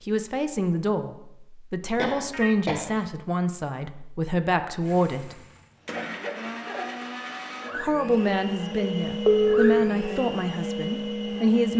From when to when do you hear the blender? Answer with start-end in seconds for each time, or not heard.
4.8-11.7.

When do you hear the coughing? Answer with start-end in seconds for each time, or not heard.
1.9-2.9, 5.9-7.1.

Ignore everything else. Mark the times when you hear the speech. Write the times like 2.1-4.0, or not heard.
0.1-5.4, 7.8-11.7.